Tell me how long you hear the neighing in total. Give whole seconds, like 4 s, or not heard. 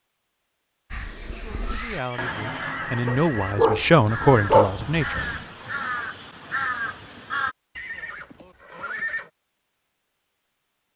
3 s.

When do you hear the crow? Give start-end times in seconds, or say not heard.
0.9-7.5.